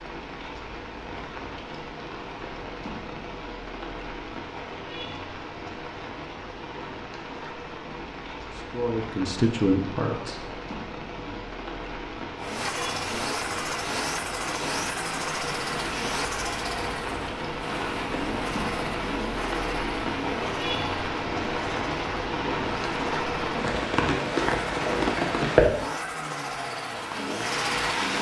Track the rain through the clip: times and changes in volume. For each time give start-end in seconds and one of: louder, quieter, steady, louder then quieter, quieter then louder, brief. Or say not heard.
0.0-28.1 louder.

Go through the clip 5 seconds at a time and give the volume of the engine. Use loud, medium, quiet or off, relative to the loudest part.
off, off, loud, loud, medium, loud.